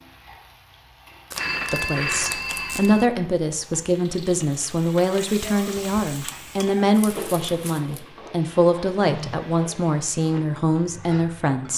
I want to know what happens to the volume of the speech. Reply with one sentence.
The volume of the speech stays about the same.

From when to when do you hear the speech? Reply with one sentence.
You can hear the speech from 1.7 to 11.7 s.